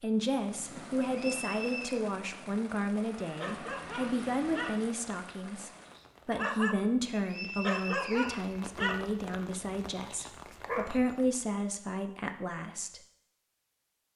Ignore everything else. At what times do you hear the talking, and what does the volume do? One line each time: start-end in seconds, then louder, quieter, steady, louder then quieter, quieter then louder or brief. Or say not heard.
0.0-13.0 steady.